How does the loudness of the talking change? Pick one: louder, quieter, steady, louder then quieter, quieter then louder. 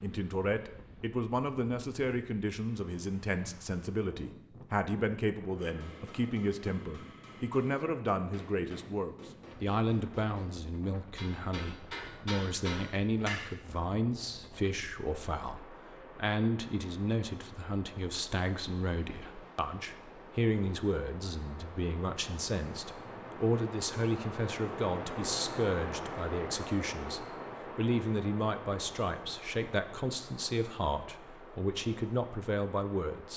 steady.